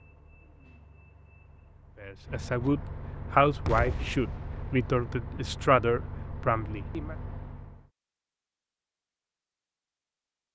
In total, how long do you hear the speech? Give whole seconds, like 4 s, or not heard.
5 s.